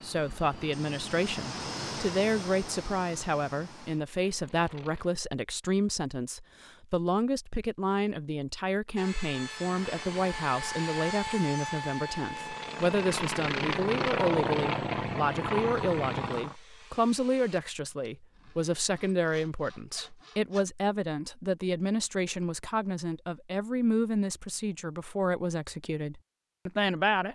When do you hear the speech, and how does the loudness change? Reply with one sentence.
You can hear the speech from 0.0 to 27.3 s, at a steady volume.